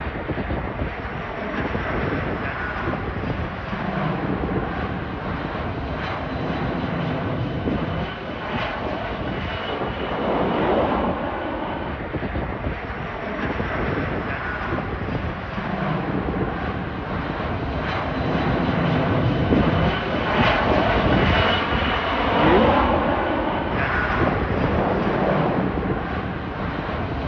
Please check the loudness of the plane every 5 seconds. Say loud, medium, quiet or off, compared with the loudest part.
medium, medium, medium, loud, loud, medium.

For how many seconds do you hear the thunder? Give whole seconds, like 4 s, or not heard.
3 s.